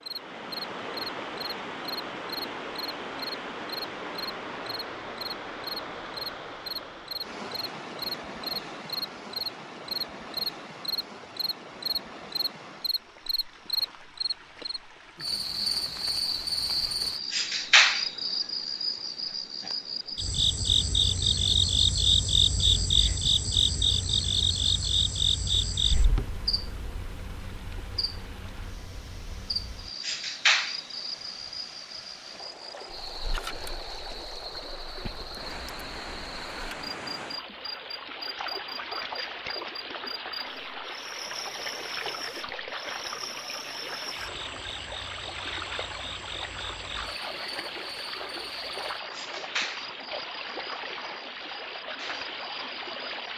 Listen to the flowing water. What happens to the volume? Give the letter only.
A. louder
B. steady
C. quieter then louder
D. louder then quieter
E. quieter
C.